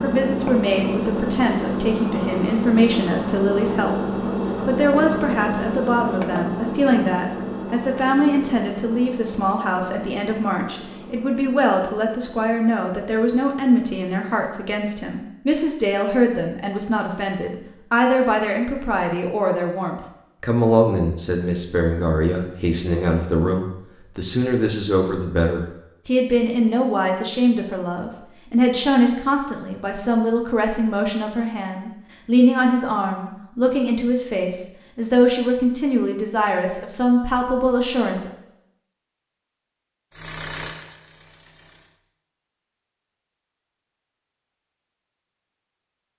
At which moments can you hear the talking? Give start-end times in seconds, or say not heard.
0.0-4.0, 4.7-38.3.